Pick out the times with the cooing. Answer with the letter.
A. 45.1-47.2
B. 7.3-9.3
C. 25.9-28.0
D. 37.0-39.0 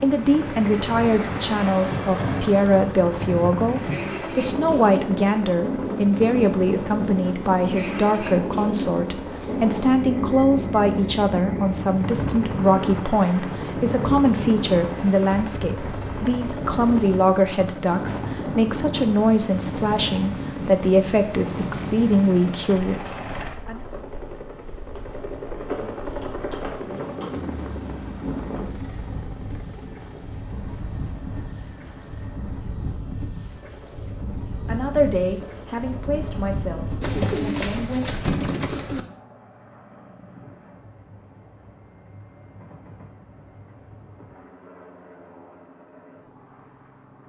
D.